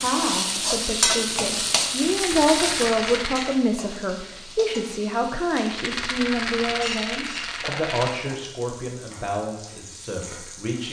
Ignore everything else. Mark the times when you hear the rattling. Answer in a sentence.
You can hear the rattling from 1.9 to 3.6 s and from 5.5 to 8.2 s.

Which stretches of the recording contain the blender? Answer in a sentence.
The blender can't be heard in this clip.